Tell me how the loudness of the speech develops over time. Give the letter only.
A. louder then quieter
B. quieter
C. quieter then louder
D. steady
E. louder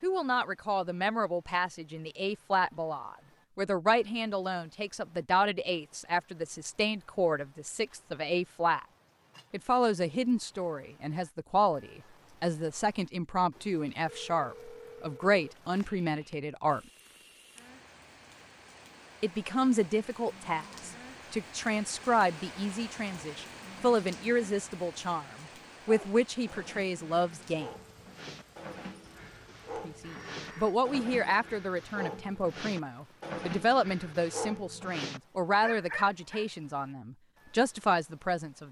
D.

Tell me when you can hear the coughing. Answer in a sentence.
You can't hear the coughing here.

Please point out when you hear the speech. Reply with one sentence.
The speech can be heard from 0.0 to 8.8 s, from 9.5 to 16.8 s, from 19.2 to 27.7 s and from 29.9 to 38.6 s.